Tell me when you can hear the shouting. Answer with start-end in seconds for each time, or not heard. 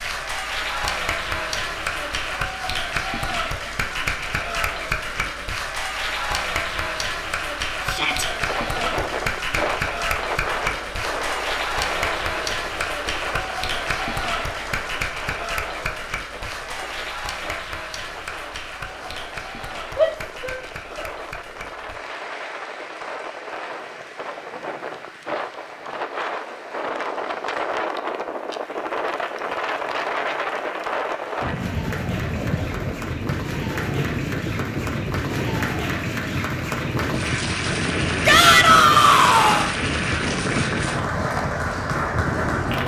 7.8-8.2, 19.9-21.1, 38.2-39.7.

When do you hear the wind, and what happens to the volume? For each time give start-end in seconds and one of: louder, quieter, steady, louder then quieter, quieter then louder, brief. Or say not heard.
8.2-42.8 quieter then louder.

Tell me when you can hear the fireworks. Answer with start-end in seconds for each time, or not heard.
not heard.